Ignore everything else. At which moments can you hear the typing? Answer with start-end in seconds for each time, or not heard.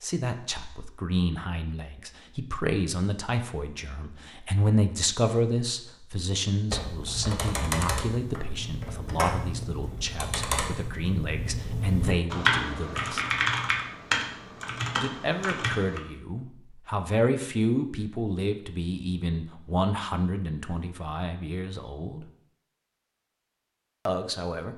6.7-16.0.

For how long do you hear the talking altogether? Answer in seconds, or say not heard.
21 s.